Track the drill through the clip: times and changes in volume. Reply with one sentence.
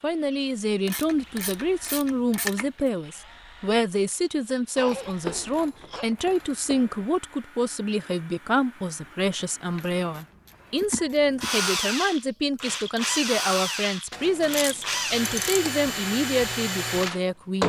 You can hear the drill from 0.0 to 17.6 s, getting louder.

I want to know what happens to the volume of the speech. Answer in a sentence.
The volume of the speech stays about the same.